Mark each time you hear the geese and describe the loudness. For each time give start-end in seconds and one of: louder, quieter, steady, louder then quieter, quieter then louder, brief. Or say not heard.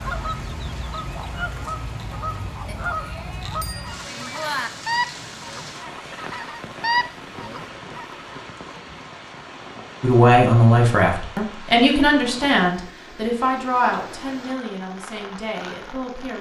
0.0-8.2 louder.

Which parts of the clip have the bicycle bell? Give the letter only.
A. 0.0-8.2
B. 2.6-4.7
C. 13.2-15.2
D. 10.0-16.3
B.